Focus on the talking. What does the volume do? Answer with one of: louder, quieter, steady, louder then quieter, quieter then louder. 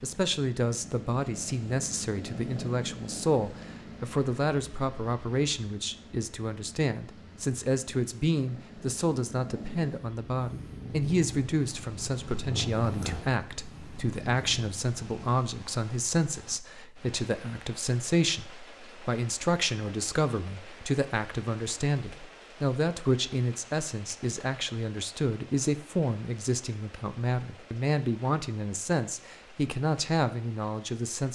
steady.